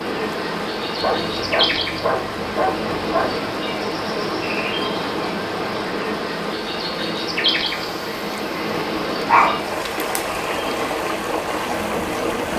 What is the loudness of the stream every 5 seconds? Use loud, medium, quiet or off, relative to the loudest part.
medium, medium, loud.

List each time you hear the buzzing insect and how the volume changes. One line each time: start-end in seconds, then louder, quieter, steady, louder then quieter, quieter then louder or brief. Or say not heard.
0.0-12.5 quieter.